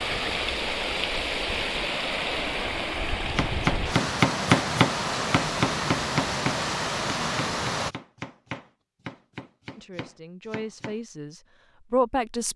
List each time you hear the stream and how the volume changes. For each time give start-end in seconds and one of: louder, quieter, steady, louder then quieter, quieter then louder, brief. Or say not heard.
0.0-8.0 steady.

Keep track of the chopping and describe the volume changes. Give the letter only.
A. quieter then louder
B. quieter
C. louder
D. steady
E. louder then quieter
B.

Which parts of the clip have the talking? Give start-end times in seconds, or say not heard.
9.8-12.5.